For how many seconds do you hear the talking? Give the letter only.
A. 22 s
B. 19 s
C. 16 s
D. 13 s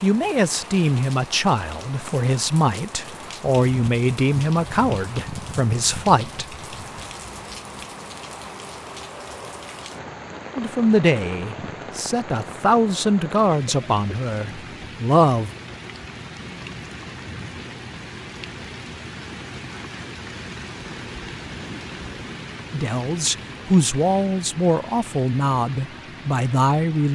C.